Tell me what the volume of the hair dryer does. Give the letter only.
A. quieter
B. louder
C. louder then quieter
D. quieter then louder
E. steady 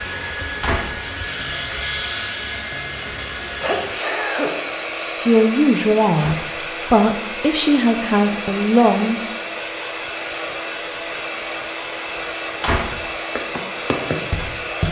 E.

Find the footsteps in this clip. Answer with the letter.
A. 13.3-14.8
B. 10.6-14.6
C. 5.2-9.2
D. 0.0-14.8
A.